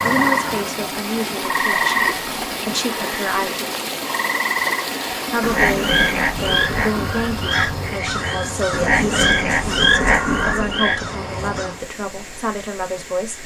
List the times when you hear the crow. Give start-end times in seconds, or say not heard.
6.3-11.8.